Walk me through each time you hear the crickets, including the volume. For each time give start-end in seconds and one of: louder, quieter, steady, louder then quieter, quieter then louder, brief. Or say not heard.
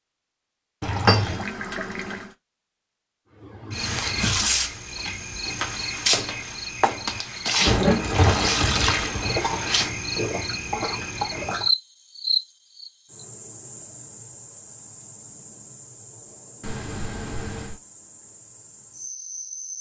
3.4-19.7 quieter.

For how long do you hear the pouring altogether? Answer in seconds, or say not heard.
4 s.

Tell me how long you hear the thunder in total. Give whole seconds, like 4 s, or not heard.
2 s.